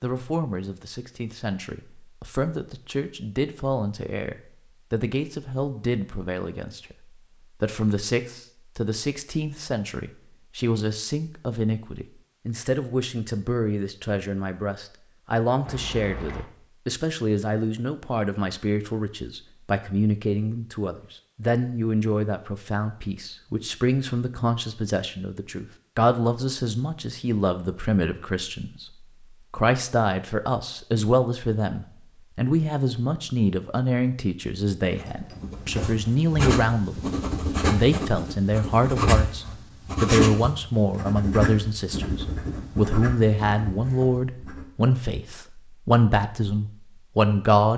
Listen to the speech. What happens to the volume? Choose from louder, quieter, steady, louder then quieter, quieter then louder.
louder.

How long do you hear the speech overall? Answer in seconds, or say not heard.
47 s.